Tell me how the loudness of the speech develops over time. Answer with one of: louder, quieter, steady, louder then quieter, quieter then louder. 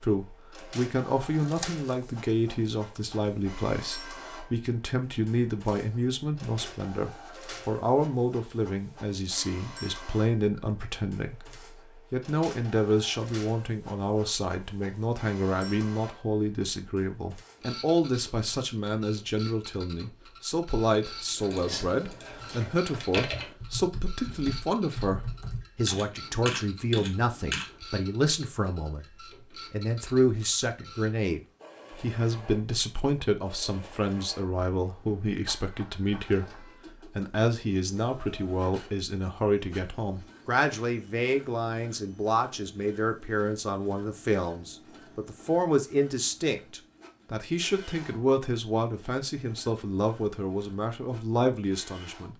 steady.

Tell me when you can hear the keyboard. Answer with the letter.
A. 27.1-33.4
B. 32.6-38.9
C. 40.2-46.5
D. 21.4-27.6
D.